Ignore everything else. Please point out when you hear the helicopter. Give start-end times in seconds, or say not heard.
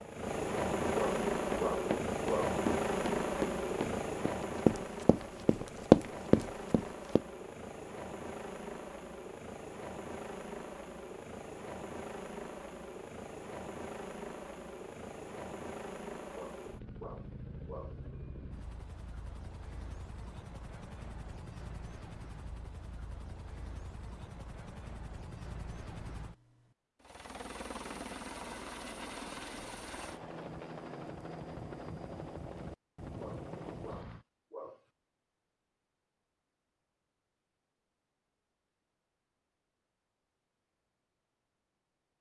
0.0-34.2.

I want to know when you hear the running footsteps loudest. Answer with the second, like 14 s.
6 s.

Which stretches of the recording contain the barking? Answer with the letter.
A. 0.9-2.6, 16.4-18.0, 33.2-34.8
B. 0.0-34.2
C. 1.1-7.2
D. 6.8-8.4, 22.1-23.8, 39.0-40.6
A.